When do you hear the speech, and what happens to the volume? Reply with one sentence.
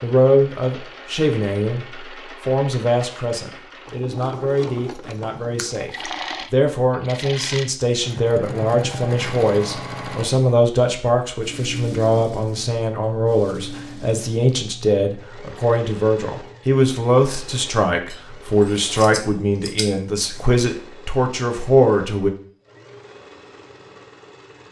You can hear the speech from 0.0 to 22.3 s, at a steady volume.